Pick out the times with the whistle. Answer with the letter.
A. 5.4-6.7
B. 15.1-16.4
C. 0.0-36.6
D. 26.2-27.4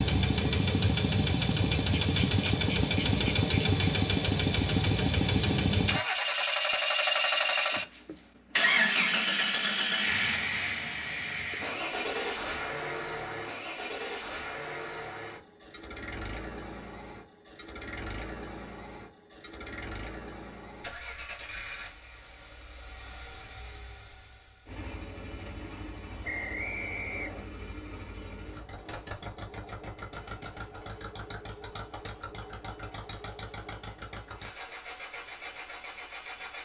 D.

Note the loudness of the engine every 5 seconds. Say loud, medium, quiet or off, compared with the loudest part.
loud, loud, medium, quiet, quiet, quiet, quiet, quiet.